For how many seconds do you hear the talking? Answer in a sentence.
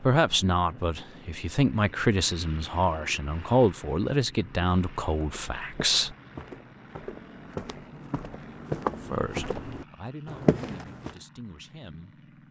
You can hear the talking for 9 seconds altogether.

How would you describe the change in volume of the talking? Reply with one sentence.
The volume of the talking goes down.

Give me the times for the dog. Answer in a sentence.
You can't hear the dog here.